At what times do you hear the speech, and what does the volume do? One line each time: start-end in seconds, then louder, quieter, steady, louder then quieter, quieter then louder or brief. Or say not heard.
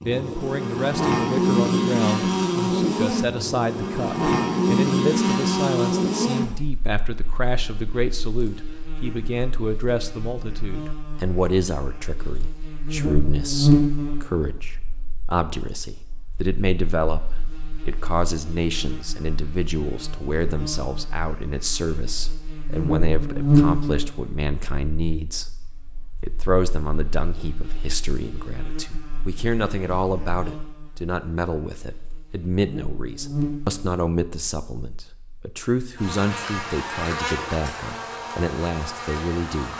0.0-39.7 steady.